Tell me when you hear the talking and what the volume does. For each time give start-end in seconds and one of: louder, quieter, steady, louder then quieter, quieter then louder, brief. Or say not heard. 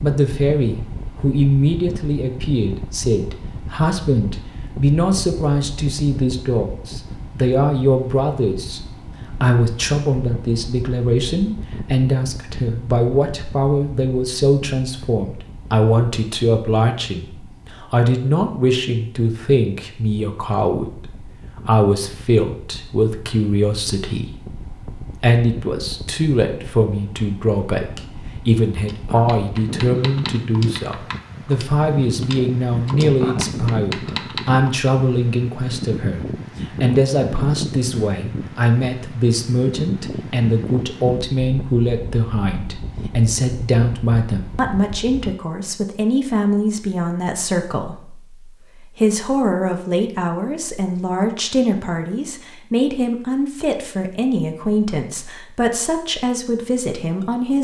0.0-57.5 steady.